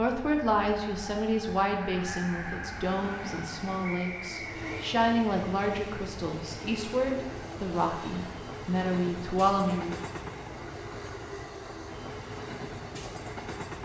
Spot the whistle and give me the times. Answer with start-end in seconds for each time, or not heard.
3.9-4.8.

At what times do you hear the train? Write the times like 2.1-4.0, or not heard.
0.1-13.8.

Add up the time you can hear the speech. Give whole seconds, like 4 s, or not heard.
10 s.